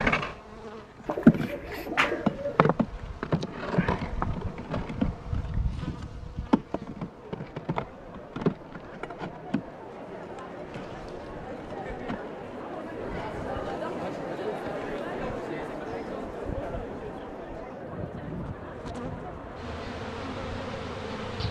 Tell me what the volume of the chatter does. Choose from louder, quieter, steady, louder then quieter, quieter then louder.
louder then quieter.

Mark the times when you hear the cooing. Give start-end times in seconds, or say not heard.
1.1-2.7.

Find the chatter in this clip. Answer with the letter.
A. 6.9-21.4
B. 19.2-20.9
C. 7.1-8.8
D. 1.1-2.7
A.